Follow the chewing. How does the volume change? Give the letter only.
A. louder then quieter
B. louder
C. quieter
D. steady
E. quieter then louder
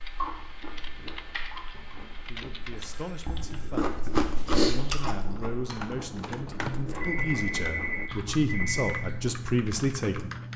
A.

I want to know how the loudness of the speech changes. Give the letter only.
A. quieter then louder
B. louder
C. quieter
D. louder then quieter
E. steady
B.